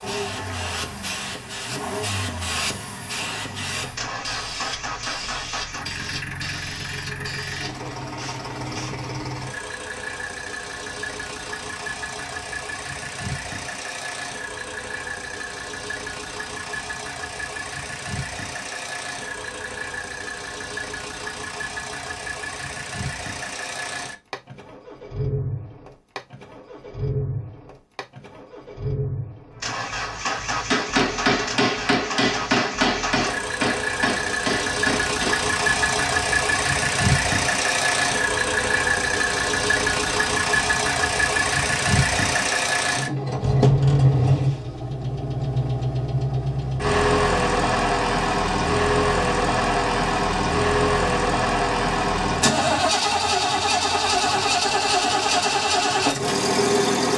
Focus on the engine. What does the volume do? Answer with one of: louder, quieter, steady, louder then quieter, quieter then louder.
louder.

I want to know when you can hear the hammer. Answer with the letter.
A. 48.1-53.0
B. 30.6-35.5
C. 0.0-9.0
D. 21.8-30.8
B.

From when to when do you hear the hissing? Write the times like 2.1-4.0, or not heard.
0.0-9.0.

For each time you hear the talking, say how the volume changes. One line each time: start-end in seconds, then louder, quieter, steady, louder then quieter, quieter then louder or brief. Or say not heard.
not heard.